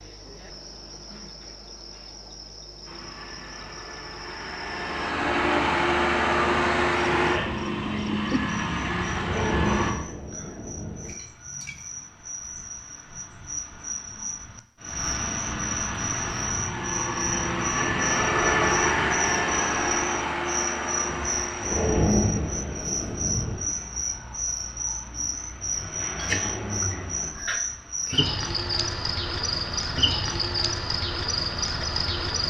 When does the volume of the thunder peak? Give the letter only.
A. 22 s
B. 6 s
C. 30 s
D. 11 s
A.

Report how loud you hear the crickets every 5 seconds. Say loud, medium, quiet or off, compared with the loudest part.
quiet, medium, medium, loud, loud, loud, loud.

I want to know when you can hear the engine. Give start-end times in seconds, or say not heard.
2.9-9.9, 15.2-27.4.